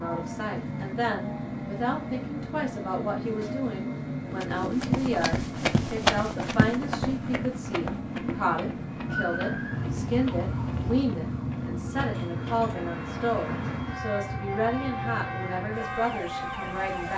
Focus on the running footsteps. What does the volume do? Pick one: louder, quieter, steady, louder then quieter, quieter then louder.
quieter.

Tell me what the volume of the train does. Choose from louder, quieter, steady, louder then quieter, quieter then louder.
steady.